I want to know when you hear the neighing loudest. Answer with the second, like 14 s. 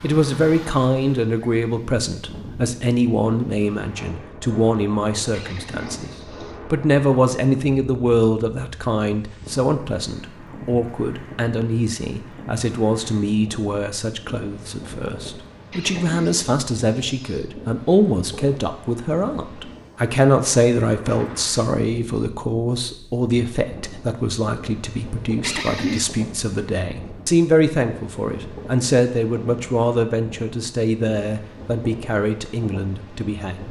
26 s.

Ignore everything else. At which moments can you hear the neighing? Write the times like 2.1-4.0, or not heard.
5.3-6.5, 15.7-17.5, 25.4-26.1.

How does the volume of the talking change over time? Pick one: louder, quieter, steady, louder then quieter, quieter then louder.
steady.